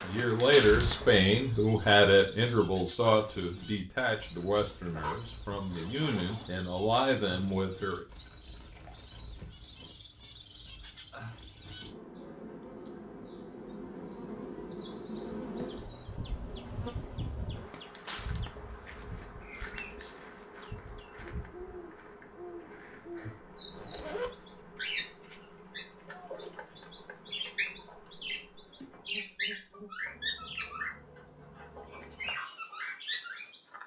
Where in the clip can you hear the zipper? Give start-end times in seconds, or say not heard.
4.8-6.5, 23.7-24.3.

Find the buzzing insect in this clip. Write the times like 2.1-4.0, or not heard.
0.0-1.7, 11.8-32.4.